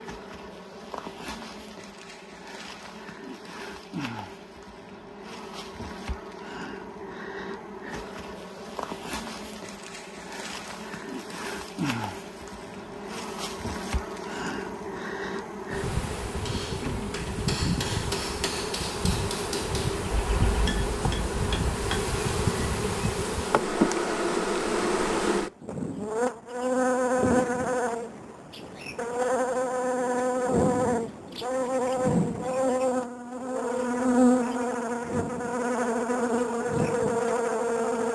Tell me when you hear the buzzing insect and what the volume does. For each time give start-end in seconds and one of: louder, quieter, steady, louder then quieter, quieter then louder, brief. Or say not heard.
0.0-38.0 louder.